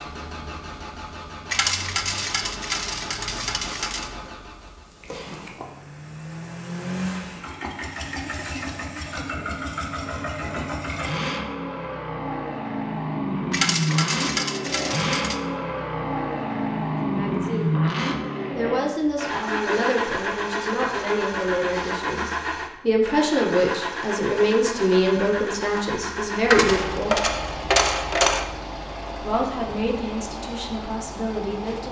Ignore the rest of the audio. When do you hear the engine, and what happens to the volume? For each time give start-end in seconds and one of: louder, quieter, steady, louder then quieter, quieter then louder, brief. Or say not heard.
0.0-31.8 louder then quieter.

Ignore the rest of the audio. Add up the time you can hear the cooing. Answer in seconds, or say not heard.
not heard.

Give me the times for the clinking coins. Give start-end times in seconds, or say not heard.
1.5-4.1, 13.5-15.3, 26.5-28.4.